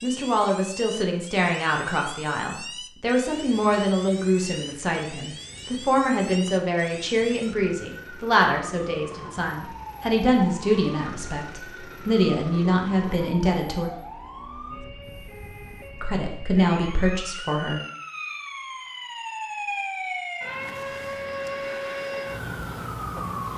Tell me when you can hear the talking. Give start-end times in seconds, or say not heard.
0.0-13.9, 15.9-17.8.